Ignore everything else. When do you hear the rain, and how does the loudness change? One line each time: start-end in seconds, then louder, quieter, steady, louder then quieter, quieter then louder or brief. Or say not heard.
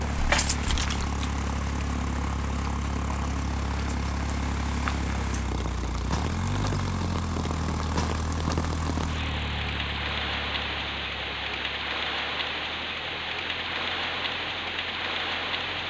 0.0-15.8 louder.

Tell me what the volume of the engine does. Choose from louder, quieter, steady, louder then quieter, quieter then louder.
quieter.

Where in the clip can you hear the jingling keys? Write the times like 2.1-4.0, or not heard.
0.1-1.0.